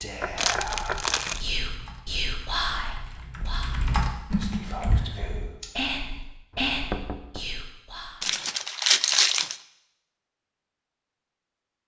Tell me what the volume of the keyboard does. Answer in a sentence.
The loudness of the keyboard goes up, then down.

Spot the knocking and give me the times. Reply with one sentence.
The knocking can be heard from 0.2 to 1.1 s and from 6.5 to 7.5 s.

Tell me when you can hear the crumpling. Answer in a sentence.
The crumpling can be heard from 0.3 to 1.4 s and from 8.2 to 9.6 s.